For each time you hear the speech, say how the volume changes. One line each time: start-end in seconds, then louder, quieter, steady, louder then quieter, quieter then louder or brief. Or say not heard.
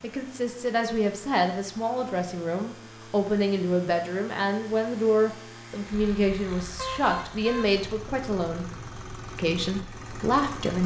0.0-8.7 steady
9.3-10.8 brief.